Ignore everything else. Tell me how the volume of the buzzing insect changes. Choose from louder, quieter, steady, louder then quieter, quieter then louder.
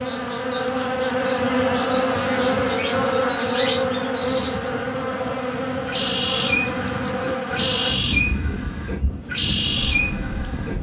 quieter.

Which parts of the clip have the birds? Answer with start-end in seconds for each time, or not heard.
2.2-10.7.